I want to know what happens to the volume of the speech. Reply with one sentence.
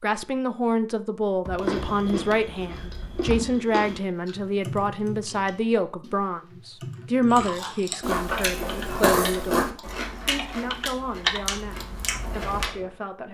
The volume of the speech goes down.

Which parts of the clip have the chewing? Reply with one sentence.
You can hear the chewing from 1.6 to 4.3 s and from 7.3 to 12.7 s.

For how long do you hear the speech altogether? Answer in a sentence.
You can hear the speech for 13 seconds altogether.